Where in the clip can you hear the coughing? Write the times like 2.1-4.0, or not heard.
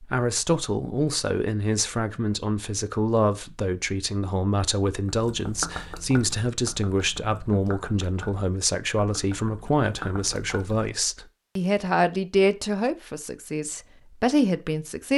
not heard.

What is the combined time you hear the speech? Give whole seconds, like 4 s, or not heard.
15 s.